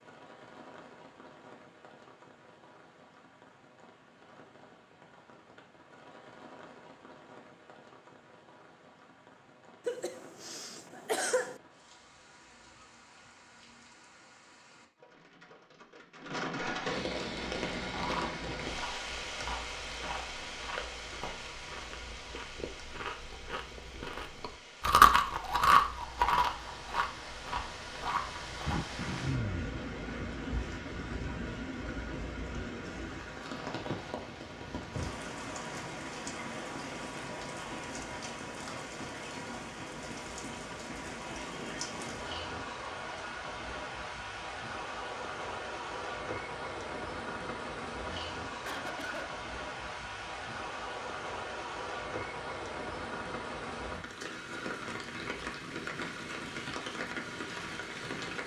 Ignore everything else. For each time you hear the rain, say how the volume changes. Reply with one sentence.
The rain can be heard from 0.0 to 58.4 s, getting louder.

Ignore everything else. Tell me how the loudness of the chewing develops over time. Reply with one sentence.
The volume of the chewing goes up, then down.